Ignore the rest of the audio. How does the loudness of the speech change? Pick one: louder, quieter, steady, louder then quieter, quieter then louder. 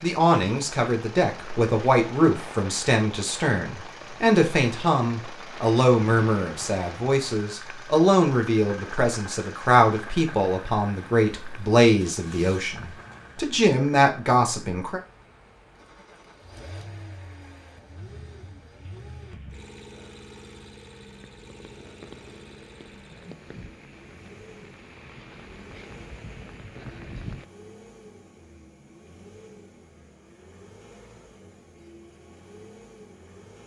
steady.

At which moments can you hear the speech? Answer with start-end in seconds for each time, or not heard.
0.0-15.0.